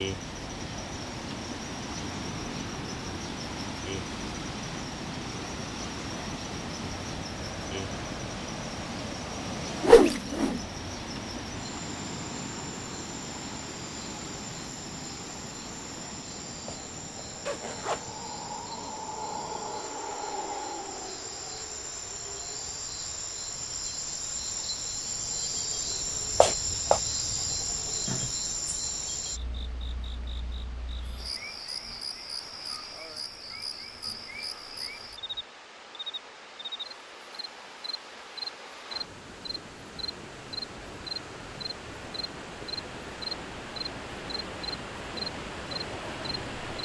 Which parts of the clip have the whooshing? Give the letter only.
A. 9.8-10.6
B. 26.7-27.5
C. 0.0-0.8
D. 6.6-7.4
A.